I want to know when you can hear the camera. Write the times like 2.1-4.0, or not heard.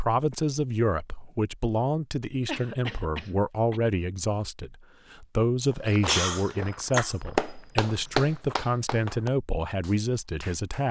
not heard.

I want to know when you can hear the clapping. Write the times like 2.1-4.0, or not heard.
7.0-10.8.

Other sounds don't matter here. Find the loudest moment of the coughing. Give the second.
6 s.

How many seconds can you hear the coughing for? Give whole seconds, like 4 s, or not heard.
3 s.